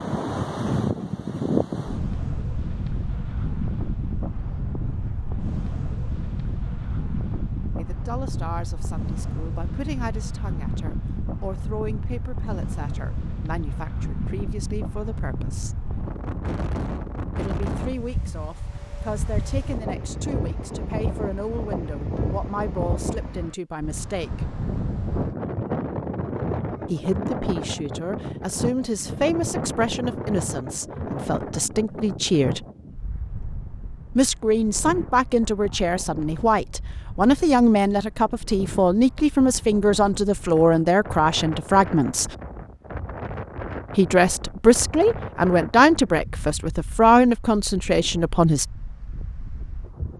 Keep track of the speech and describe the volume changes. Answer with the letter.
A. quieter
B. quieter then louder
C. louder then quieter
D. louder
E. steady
D.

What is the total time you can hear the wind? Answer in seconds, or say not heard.
50 s.